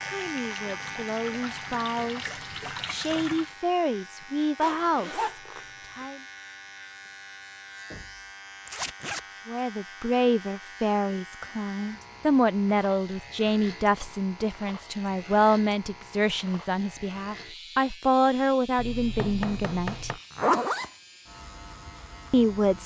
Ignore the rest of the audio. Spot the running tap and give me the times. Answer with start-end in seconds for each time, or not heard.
0.0-3.5.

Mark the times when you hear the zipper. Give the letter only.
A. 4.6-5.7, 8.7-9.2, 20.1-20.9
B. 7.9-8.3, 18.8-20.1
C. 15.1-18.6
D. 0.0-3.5
A.